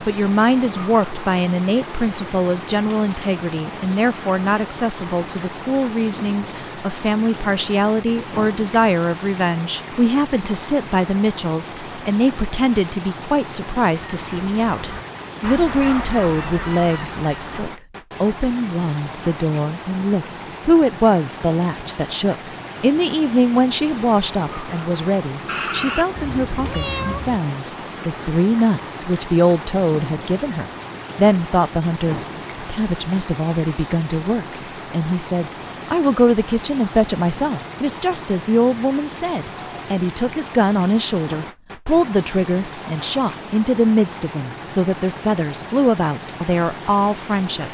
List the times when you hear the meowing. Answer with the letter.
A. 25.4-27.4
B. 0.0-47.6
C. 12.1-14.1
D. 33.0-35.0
A.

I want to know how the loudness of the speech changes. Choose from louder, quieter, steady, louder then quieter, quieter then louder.
steady.